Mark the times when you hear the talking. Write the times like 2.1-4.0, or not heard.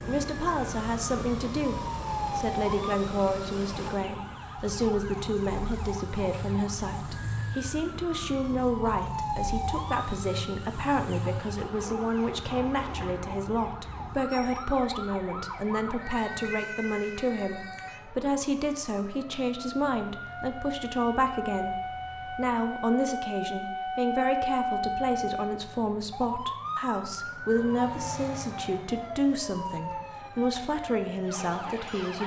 0.0-32.2.